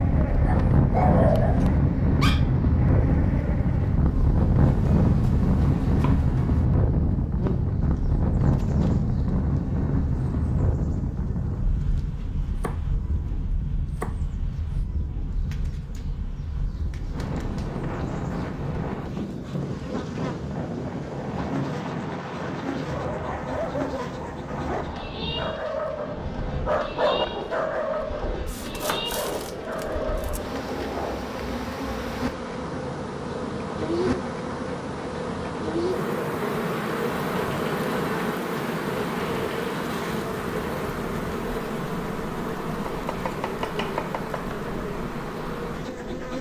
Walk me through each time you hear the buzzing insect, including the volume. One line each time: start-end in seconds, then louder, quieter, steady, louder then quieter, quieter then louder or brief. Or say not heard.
0.0-46.3 quieter then louder.